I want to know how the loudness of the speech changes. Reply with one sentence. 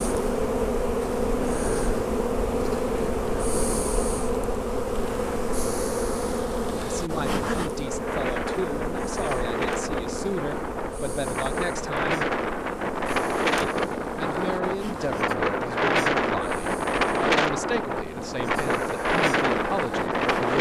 The volume of the speech stays about the same.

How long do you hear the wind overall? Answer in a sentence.
The wind can be heard for 13 seconds in total.